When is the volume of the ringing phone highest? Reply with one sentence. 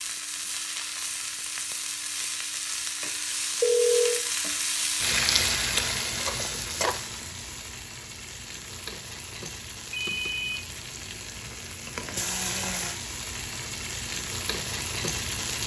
The volume of the ringing phone peaks at 4 seconds.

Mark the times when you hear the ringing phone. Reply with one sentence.
The ringing phone can be heard from 3.6 to 4.2 s and from 9.9 to 10.7 s.